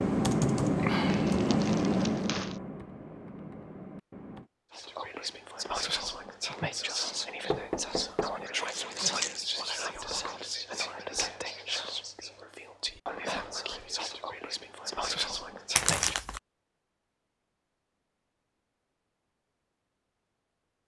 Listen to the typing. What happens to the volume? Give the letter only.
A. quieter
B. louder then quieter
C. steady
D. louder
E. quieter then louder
A.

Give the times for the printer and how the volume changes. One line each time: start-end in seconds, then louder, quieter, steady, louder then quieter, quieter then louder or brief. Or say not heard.
not heard.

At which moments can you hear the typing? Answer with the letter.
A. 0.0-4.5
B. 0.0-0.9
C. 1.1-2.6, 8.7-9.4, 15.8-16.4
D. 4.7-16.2
A.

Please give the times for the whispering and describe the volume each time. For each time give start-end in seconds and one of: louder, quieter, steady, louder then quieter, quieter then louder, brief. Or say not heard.
4.7-16.2 steady.